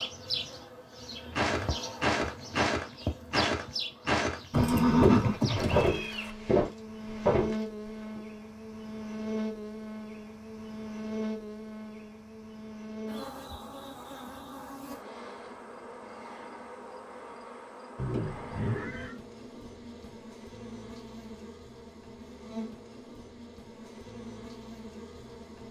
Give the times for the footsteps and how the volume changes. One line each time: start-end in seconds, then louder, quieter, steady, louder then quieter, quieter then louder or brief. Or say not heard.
1.4-8.2 steady.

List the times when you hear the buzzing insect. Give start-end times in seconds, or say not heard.
0.0-25.6.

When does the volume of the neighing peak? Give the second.
5 s.